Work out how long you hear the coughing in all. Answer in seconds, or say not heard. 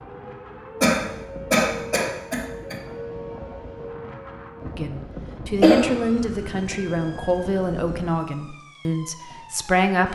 3 s.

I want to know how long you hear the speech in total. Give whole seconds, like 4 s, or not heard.
5 s.